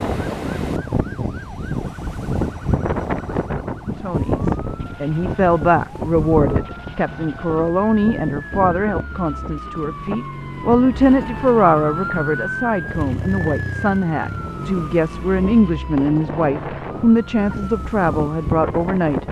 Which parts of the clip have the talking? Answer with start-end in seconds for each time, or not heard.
4.0-19.2.